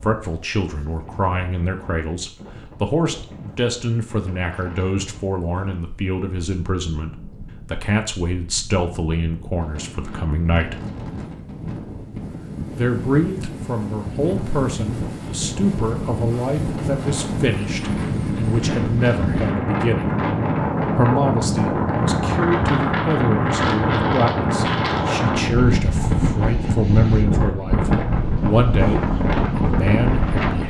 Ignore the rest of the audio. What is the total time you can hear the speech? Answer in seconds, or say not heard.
28 s.